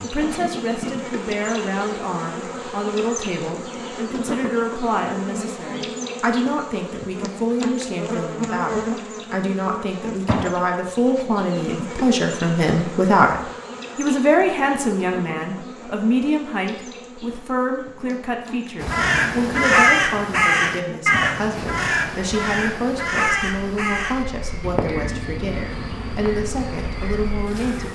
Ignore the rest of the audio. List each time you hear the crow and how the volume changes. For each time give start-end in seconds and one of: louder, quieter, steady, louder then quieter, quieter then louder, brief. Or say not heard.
18.8-27.9 quieter.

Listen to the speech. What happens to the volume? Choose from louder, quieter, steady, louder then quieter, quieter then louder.
louder then quieter.